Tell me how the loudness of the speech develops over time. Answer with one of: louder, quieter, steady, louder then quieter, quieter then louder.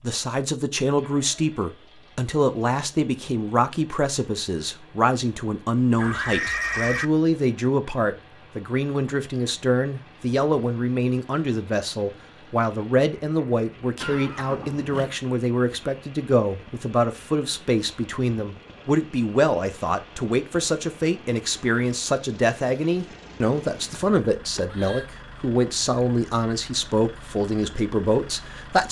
steady.